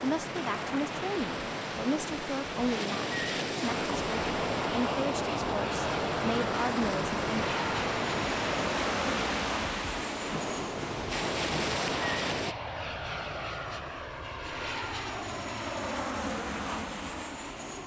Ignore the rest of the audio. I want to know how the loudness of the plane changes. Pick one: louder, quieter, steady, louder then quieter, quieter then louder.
steady.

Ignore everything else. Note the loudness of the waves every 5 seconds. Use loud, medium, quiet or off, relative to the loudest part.
loud, loud, loud, off.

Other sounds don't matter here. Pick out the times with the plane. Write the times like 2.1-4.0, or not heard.
3.6-17.8.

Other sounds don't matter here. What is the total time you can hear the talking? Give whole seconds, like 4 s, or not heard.
7 s.